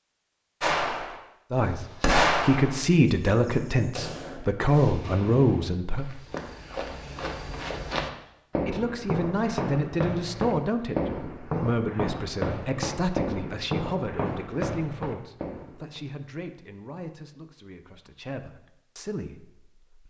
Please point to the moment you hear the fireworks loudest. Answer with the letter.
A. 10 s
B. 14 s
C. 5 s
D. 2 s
D.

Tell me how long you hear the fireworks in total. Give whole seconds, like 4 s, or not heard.
4 s.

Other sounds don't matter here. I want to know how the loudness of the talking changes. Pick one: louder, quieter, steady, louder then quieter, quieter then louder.
quieter.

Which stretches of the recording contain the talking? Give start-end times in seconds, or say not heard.
1.5-6.0, 8.7-20.0.